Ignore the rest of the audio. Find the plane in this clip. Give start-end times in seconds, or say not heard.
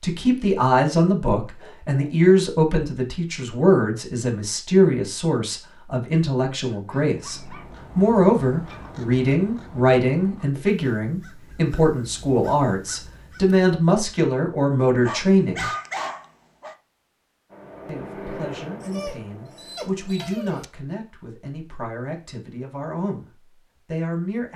17.4-20.2.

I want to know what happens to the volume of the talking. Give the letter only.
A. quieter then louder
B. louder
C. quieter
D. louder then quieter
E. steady
C.